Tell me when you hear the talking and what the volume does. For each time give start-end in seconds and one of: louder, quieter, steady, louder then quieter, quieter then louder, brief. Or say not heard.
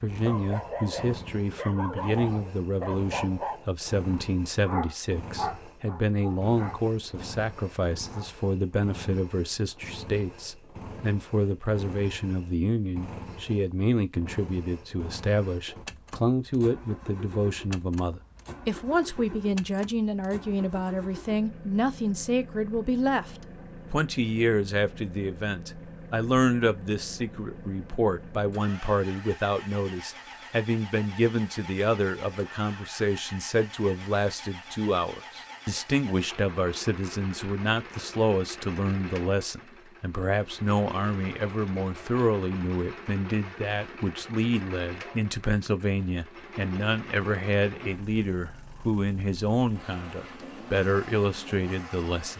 0.0-52.3 steady.